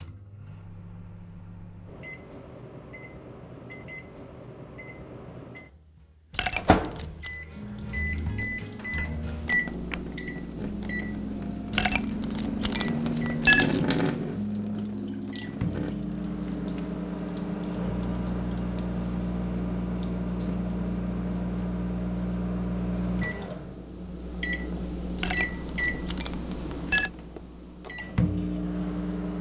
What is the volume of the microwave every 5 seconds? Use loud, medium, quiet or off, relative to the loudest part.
quiet, loud, medium, loud, loud, loud.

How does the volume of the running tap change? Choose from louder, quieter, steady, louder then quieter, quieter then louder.
louder then quieter.